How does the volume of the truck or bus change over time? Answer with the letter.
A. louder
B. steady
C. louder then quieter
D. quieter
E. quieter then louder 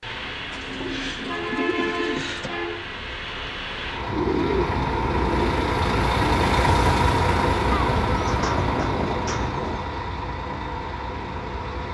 C.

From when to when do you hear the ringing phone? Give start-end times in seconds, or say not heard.
not heard.